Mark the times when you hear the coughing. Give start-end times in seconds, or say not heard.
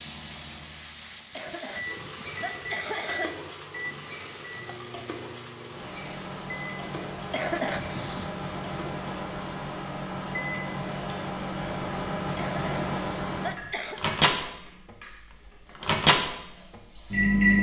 1.3-3.4, 7.3-8.3, 12.3-14.0.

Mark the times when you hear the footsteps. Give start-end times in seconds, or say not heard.
not heard.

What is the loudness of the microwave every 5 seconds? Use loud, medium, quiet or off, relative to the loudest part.
quiet, quiet, medium, loud.